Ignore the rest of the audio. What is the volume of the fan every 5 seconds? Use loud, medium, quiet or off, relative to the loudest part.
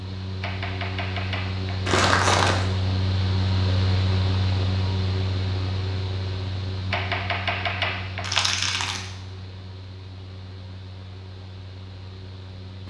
loud, medium, quiet.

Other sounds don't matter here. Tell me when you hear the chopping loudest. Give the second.
8 s.